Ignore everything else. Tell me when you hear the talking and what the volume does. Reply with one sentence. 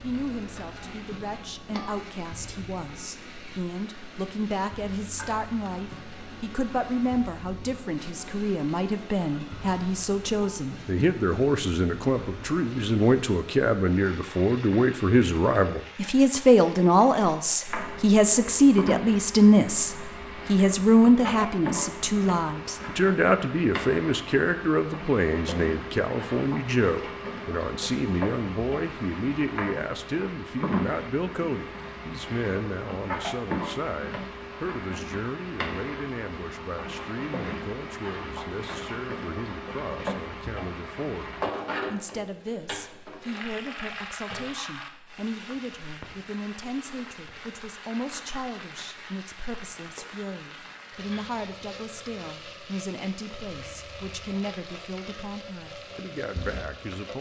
You can hear the talking from 0.0 to 57.1 s, getting louder then quieter.